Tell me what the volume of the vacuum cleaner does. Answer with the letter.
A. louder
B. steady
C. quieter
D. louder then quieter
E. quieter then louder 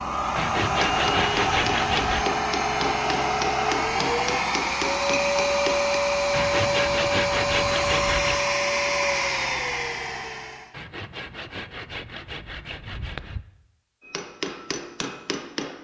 B.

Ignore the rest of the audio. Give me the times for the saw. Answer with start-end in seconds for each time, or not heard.
0.3-2.2, 6.3-8.4, 10.7-13.4.